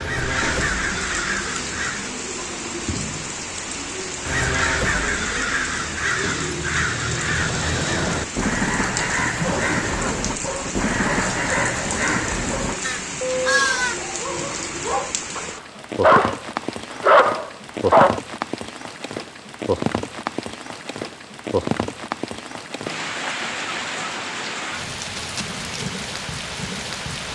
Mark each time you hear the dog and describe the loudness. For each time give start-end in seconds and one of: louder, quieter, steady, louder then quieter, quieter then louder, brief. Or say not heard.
9.4-18.2 louder.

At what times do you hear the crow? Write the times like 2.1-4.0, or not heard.
0.0-2.2, 4.2-14.0.